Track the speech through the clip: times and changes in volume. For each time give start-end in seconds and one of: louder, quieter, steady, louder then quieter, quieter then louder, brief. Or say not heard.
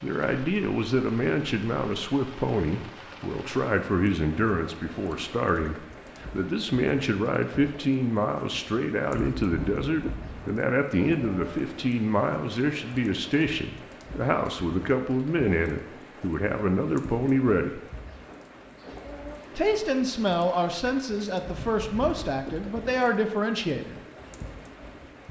0.0-17.8 steady
19.6-24.0 quieter then louder.